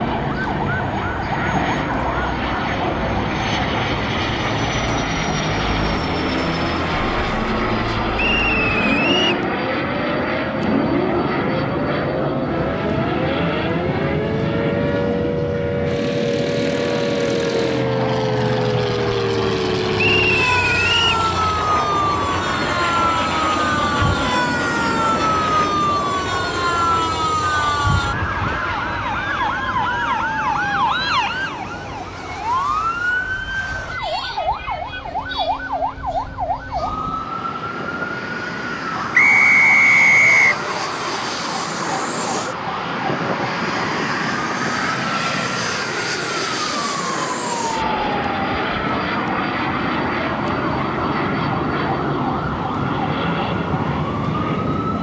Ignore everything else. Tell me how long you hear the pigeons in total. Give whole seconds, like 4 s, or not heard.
not heard.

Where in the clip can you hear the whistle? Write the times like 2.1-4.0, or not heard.
8.2-9.4, 19.9-21.2, 39.1-40.5.